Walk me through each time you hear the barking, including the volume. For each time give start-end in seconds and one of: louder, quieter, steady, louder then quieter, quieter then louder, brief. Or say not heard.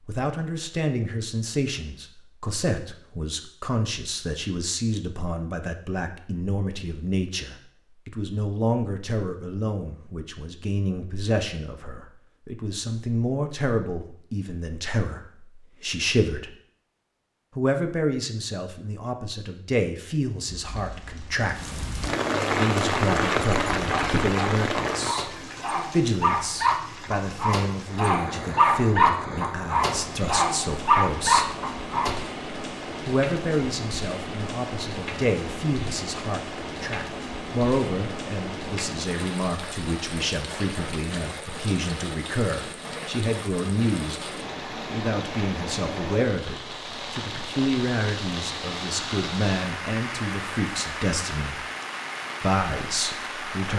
22.5-32.2 louder.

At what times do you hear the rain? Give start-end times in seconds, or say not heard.
20.4-53.7.